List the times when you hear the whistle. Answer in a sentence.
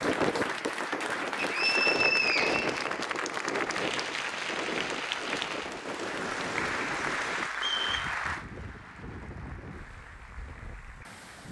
You can hear the whistle from 1.4 to 2.7 s and from 7.5 to 8.2 s.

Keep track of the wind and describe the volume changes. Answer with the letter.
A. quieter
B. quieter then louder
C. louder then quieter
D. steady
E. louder
A.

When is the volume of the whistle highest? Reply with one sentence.
The volume of the whistle peaks at 2 seconds.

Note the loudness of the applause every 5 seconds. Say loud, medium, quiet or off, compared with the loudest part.
loud, loud, quiet.